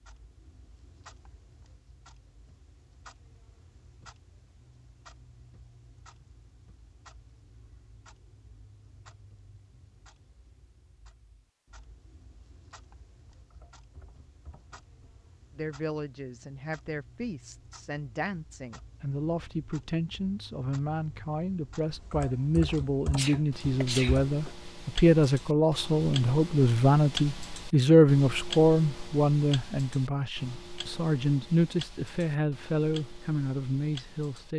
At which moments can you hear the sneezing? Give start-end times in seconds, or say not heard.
23.1-24.2.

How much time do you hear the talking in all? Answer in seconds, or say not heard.
19 s.